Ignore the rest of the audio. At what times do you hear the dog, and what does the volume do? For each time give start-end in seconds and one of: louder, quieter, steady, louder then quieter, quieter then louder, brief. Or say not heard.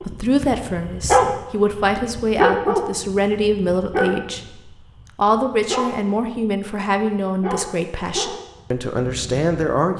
0.0-9.5 quieter.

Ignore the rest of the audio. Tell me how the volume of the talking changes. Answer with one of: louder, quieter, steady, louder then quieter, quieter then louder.
steady.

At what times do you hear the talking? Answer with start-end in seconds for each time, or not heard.
0.0-4.5, 5.2-9.9.